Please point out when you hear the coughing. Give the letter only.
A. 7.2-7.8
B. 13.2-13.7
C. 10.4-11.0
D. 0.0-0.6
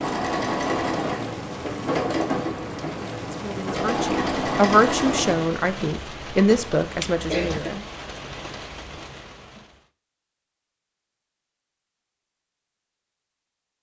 A.